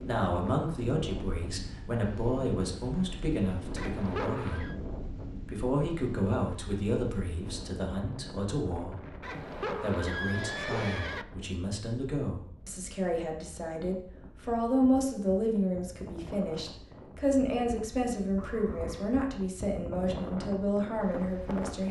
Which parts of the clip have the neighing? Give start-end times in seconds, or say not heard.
3.8-4.8, 9.2-11.2, 18.4-19.2.